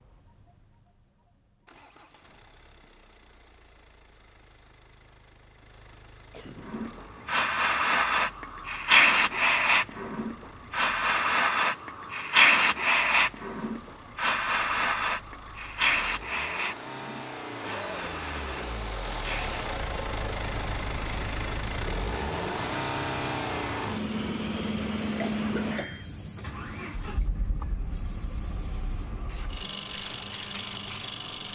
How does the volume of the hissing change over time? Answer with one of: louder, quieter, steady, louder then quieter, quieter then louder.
quieter.